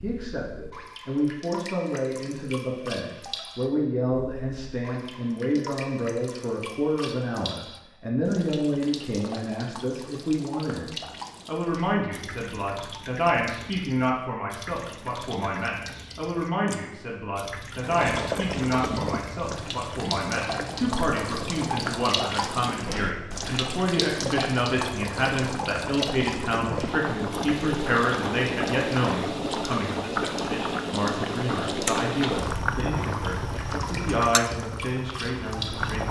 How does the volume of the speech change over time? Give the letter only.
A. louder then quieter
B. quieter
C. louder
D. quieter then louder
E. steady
E.